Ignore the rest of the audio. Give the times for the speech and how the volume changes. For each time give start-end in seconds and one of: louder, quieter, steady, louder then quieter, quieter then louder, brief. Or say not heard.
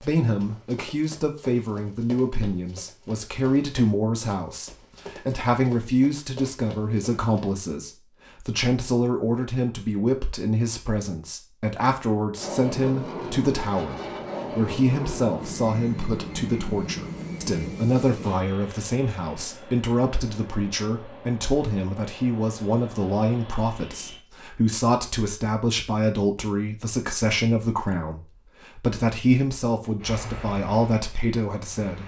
0.0-32.0 steady.